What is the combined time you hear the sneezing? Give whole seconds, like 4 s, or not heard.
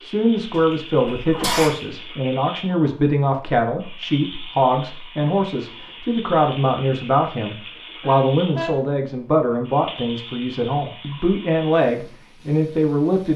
2 s.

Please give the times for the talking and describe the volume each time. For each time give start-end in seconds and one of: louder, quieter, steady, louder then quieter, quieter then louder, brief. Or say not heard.
0.0-13.3 steady.